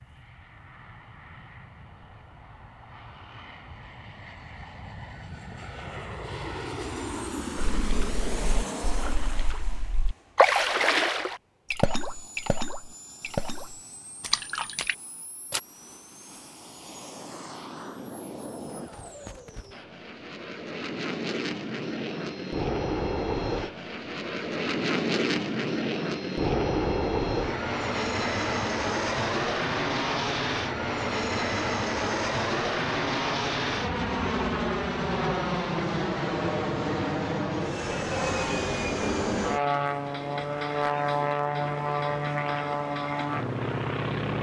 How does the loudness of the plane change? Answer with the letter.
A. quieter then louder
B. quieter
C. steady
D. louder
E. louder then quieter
A.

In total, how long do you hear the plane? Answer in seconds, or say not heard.
44 s.